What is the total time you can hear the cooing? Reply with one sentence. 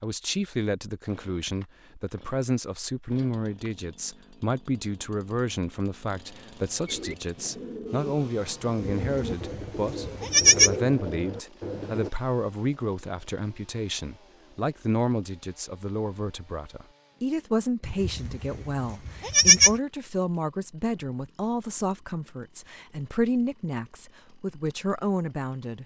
You can hear the cooing for 5 seconds altogether.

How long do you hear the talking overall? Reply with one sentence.
The talking can be heard for 26 seconds in total.